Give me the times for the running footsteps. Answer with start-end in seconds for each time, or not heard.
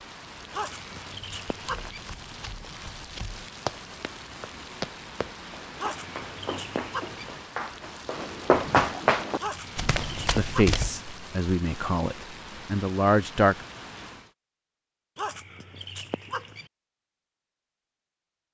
1.6-10.9.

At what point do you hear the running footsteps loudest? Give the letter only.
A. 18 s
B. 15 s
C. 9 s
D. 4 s
C.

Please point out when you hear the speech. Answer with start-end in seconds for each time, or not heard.
10.3-13.7.